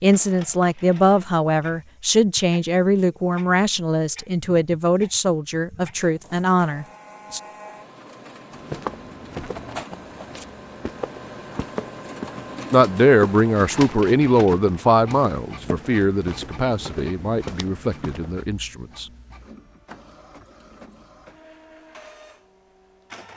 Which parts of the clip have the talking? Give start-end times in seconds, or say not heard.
0.0-7.4, 12.7-19.1.